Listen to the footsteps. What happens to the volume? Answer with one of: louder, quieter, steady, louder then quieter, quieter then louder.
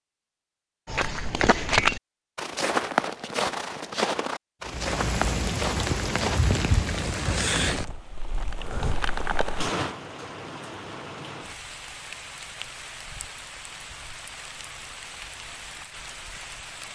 quieter.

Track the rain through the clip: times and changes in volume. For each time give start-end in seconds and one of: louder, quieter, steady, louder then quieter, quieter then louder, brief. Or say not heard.
4.7-16.9 quieter.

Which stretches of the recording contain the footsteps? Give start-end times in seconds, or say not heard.
0.8-6.4.